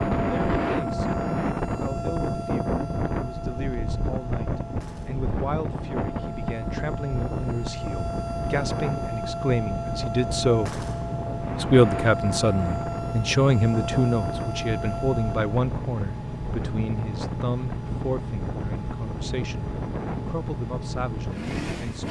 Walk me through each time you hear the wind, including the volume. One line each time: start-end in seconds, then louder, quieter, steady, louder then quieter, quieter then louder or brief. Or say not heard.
0.0-22.0 quieter.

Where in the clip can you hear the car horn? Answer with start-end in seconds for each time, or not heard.
not heard.